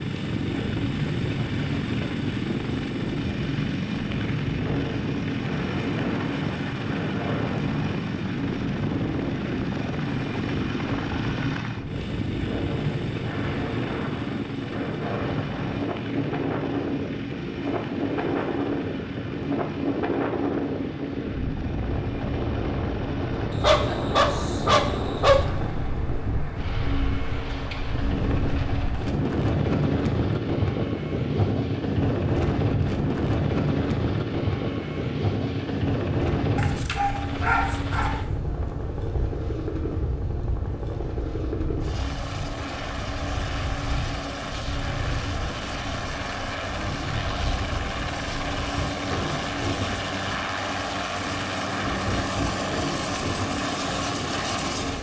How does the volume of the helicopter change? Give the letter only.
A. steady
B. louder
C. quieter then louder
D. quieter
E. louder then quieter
C.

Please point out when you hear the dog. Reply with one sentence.
The dog can be heard from 23.5 to 25.4 s and from 36.5 to 38.2 s.